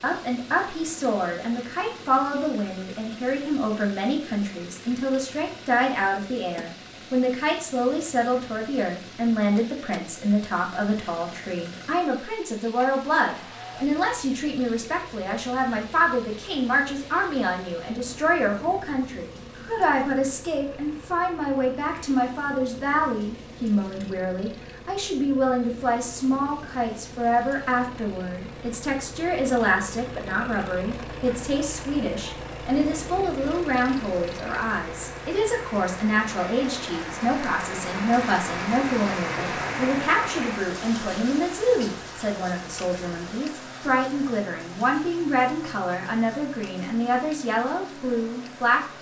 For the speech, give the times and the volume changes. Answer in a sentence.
The speech can be heard from 0.0 to 48.8 s, at a steady volume.